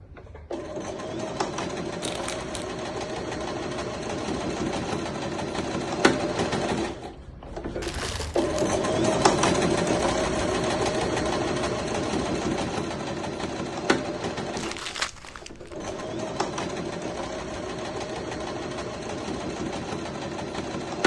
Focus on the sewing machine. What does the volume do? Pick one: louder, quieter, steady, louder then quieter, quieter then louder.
louder then quieter.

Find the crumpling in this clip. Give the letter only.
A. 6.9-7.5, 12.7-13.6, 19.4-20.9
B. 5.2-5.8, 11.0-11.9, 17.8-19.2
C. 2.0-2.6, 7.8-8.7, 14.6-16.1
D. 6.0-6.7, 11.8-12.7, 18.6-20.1
C.